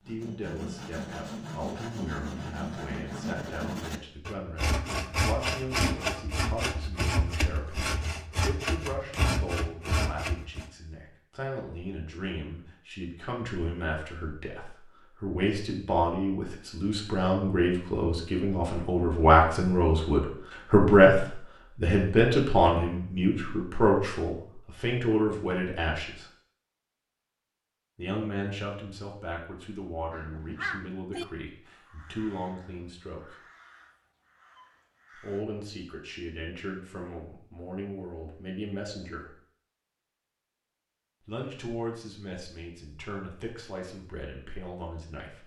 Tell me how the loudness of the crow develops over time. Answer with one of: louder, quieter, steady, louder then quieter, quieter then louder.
quieter.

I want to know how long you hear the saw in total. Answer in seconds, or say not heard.
11 s.